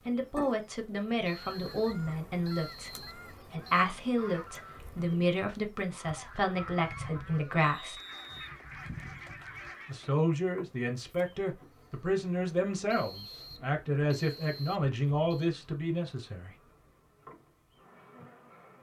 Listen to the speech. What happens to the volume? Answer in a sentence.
The volume of the speech stays about the same.